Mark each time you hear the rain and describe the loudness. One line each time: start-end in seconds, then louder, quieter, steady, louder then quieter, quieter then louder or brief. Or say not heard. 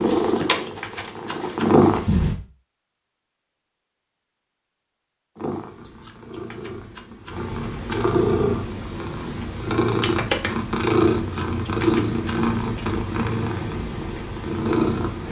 not heard.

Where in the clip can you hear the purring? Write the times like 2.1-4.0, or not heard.
0.0-2.4, 5.3-15.2.